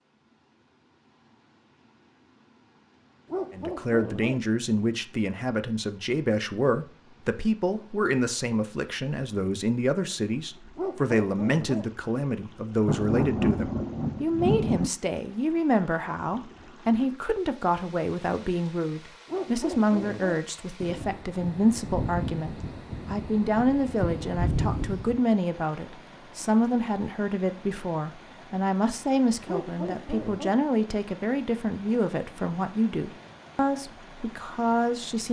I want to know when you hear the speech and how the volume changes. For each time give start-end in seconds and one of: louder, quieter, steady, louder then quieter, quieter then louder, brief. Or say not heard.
3.5-35.2 steady.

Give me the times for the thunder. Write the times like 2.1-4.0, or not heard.
12.8-14.9, 20.8-25.2.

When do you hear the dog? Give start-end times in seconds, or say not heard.
3.2-4.4, 10.8-11.8, 19.2-20.4, 29.4-30.6.